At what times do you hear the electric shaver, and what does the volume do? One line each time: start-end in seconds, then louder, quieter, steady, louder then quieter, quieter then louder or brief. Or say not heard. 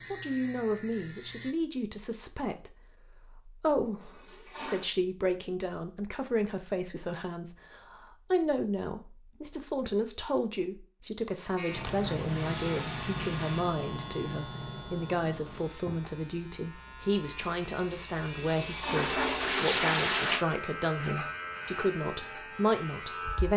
0.0-1.6 brief
11.6-23.5 quieter then louder.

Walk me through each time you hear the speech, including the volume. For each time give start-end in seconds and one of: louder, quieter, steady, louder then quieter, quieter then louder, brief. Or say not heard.
0.1-23.5 steady.